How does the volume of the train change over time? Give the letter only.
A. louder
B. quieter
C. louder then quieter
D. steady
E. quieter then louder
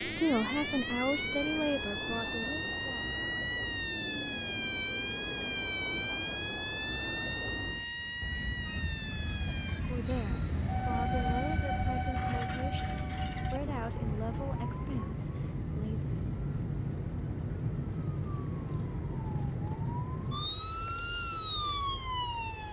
C.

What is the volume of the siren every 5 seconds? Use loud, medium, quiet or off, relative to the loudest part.
loud, loud, medium, loud, loud.